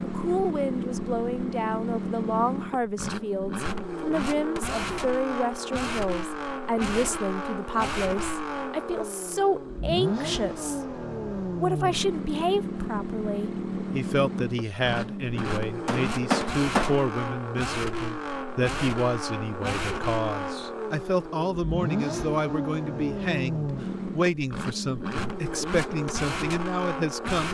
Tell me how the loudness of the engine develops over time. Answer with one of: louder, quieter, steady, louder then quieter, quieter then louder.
steady.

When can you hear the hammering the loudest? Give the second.
16 s.